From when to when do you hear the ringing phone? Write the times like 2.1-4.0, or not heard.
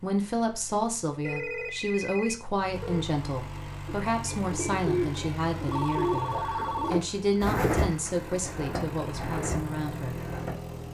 1.2-3.0, 5.7-7.0.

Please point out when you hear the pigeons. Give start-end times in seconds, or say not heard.
3.9-10.6.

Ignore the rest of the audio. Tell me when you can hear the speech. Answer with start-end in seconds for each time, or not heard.
0.0-10.2.